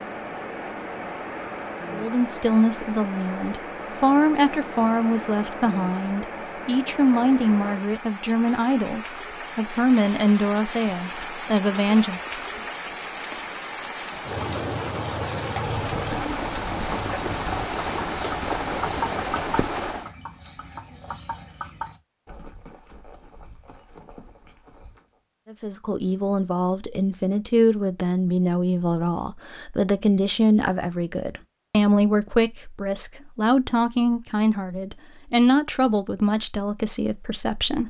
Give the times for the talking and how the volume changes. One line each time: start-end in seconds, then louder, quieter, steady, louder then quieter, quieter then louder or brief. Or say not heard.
1.9-12.2 steady
25.5-37.8 steady.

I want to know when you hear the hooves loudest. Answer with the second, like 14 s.
19 s.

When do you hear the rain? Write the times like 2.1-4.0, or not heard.
0.0-20.1.